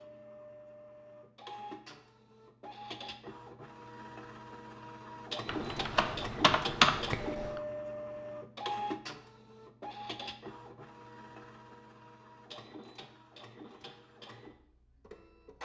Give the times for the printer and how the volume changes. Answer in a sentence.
The printer can be heard from 0.0 to 15.6 s, getting louder then quieter.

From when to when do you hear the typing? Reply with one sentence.
The typing can be heard from 5.5 to 7.6 s.